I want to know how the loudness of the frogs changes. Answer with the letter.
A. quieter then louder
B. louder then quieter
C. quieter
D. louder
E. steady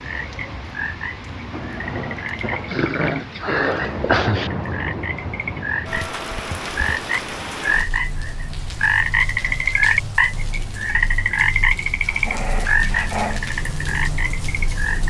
B.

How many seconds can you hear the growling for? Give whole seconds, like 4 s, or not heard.
3 s.